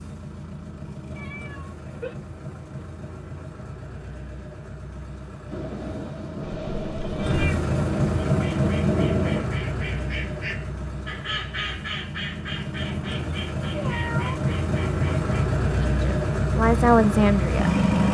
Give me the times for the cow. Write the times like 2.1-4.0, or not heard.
not heard.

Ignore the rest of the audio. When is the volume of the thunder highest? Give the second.
9 s.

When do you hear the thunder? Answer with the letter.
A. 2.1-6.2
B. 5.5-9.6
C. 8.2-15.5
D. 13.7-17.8
B.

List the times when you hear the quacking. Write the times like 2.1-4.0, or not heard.
8.2-15.5.